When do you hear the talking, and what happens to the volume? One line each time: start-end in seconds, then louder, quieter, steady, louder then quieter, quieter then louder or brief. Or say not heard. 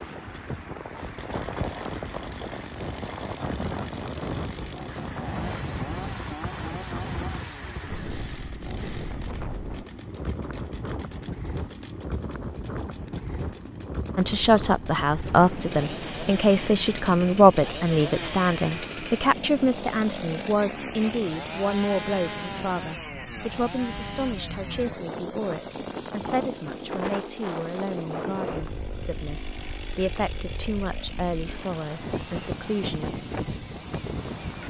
14.2-33.2 quieter.